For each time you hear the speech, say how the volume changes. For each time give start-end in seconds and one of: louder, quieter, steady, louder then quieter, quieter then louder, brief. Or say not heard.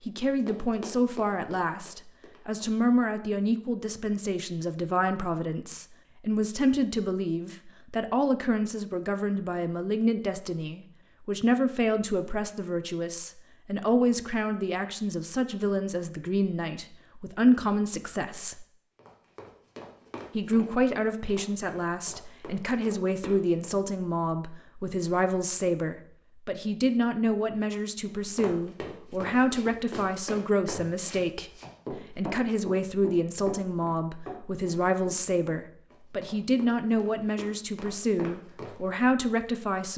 0.1-18.6 steady
20.3-39.9 steady.